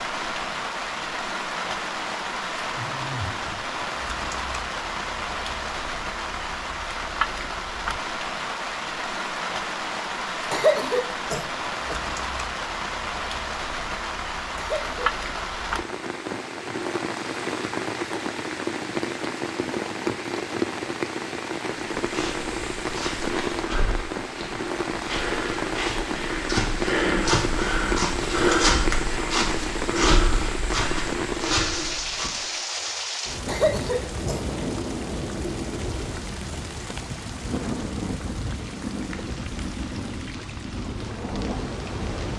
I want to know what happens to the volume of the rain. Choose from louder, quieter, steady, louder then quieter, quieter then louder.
steady.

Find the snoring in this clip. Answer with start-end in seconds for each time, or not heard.
2.7-4.1.